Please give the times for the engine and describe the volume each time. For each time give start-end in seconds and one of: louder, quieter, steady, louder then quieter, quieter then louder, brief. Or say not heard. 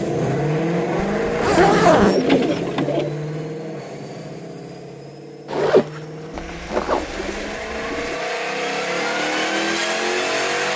0.0-10.7 quieter then louder.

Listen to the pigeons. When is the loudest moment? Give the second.
2 s.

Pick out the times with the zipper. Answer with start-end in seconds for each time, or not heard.
1.2-2.2, 5.5-7.2.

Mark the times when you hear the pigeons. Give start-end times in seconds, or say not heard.
1.4-3.1, 6.3-8.2.